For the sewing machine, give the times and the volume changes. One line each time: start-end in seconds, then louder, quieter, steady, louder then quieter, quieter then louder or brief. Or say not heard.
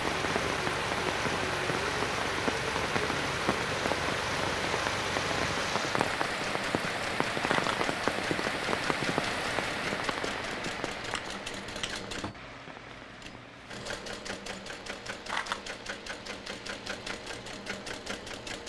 0.0-18.6 steady.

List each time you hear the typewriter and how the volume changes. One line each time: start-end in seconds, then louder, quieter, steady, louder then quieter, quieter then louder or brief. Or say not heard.
not heard.